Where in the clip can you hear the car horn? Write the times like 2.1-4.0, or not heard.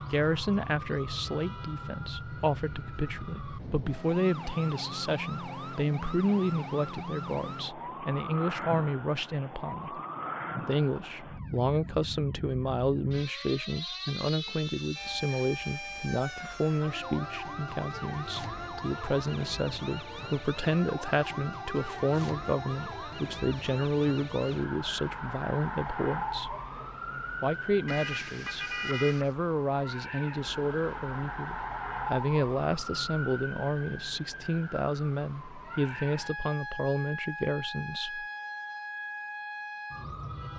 27.9-29.3.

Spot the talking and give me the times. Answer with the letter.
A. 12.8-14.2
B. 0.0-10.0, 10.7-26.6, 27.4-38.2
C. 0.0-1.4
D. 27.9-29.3
B.